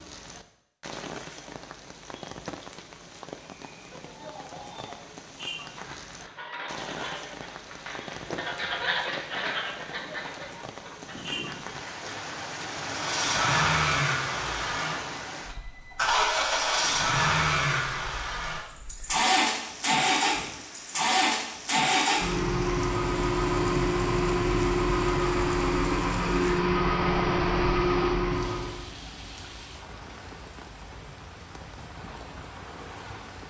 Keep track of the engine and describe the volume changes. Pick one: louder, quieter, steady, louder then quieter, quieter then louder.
steady.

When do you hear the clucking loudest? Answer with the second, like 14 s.
9 s.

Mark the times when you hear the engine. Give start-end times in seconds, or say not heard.
12.8-28.9.